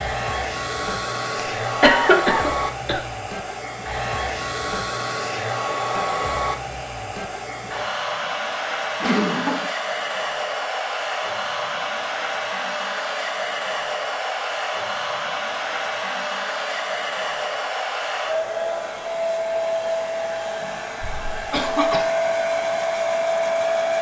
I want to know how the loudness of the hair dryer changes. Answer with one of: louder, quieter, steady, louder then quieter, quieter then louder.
steady.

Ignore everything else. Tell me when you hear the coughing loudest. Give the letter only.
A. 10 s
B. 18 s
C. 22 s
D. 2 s
D.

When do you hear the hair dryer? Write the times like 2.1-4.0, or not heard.
0.0-23.9.